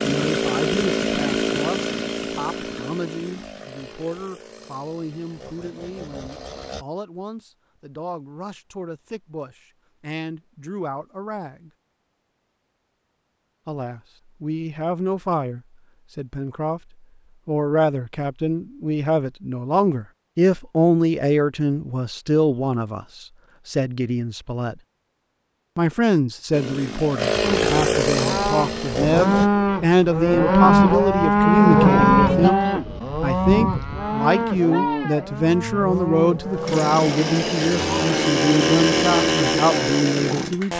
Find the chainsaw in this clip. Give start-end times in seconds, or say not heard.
0.0-6.8, 26.5-29.5, 35.9-40.7.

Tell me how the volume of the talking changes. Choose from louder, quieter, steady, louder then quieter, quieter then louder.
louder.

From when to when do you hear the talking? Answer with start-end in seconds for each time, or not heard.
0.0-11.7, 13.7-24.8, 25.8-40.7.